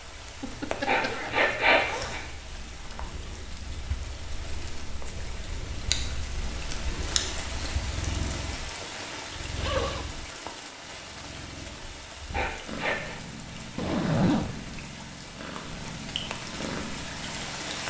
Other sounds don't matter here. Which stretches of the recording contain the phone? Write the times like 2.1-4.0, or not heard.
not heard.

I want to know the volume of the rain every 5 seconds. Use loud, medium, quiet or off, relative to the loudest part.
medium, loud, medium, loud.